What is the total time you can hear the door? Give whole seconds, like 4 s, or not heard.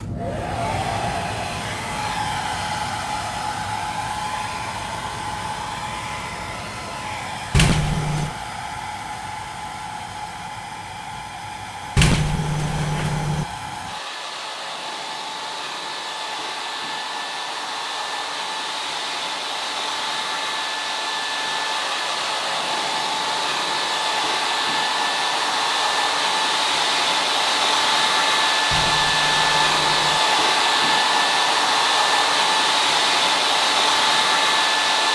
4 s.